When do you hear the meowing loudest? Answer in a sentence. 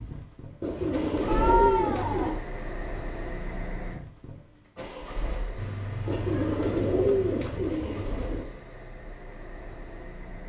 The loudest moment of the meowing is at 2 seconds.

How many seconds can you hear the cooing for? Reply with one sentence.
You can hear the cooing for 4 seconds altogether.